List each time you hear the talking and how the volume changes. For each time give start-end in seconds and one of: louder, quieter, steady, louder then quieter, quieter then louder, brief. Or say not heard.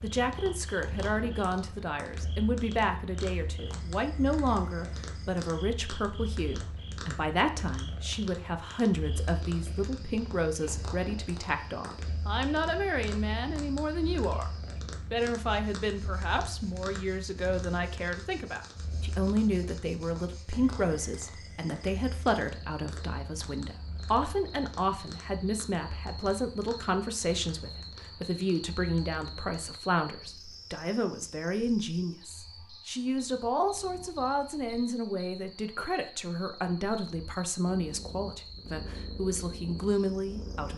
0.0-14.5 steady
15.1-40.7 steady.